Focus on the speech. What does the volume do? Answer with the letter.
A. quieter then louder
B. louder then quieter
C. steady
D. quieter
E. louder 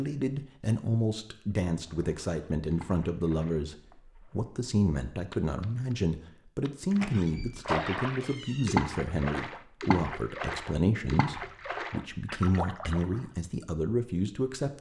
C.